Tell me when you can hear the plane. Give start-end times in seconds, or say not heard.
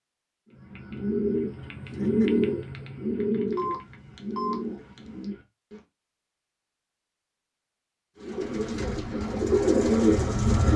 8.3-10.7.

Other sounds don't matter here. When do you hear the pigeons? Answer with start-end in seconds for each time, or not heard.
0.5-5.8, 8.2-10.7.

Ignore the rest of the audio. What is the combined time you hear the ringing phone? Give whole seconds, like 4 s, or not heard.
2 s.